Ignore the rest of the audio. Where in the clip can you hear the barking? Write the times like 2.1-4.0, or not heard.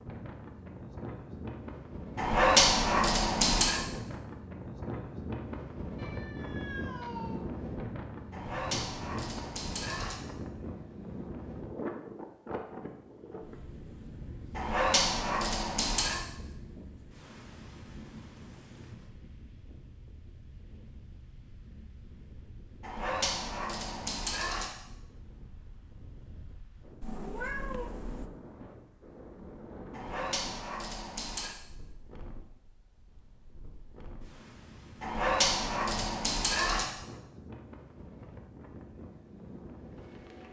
2.1-3.8, 8.3-10.2, 14.6-16.2, 22.8-24.7, 29.9-31.6, 35.0-36.9.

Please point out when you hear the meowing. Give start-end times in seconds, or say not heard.
6.0-7.5, 27.0-28.3.